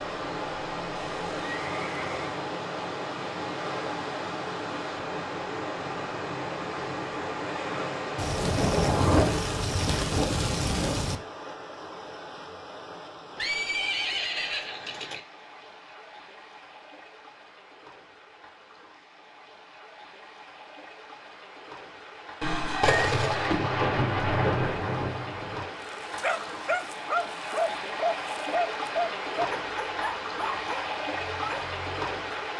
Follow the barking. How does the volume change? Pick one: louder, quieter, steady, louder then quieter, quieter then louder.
quieter.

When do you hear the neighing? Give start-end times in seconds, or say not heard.
0.9-2.4, 13.3-15.2, 22.4-23.1.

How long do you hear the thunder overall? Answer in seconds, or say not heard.
6 s.